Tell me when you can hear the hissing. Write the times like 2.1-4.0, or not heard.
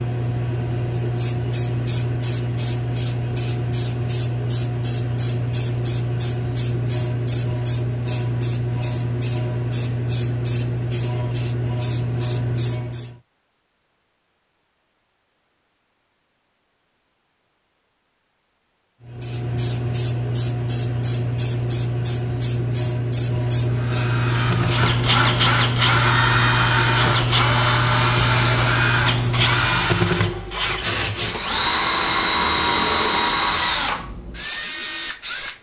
0.0-13.2, 19.0-30.0.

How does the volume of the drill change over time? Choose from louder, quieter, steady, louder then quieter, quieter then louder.
steady.